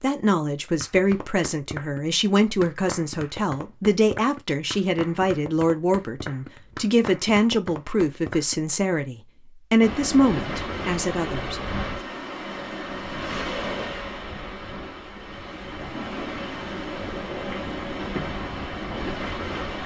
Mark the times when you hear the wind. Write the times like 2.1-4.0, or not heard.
9.8-19.8.